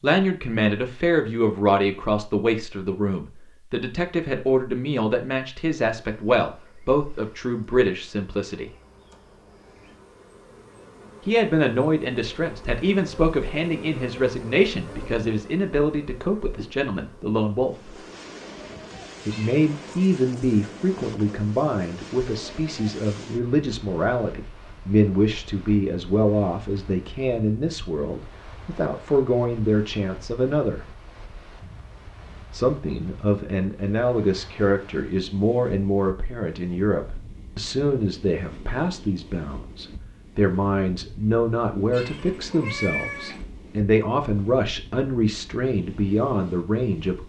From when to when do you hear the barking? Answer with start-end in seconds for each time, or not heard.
not heard.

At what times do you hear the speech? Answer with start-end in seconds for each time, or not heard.
0.0-8.7, 11.2-17.9, 19.2-30.9, 32.5-47.2.